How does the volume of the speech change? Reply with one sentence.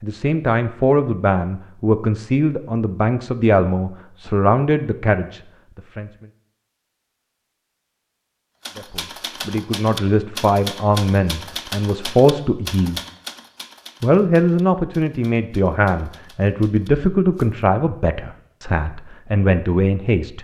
The loudness of the speech stays about the same.